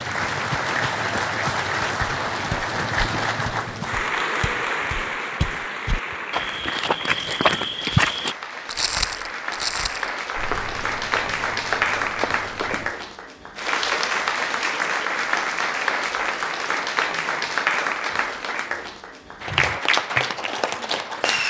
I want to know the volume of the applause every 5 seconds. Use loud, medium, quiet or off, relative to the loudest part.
loud, medium, loud, loud, loud.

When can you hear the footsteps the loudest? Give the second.
8 s.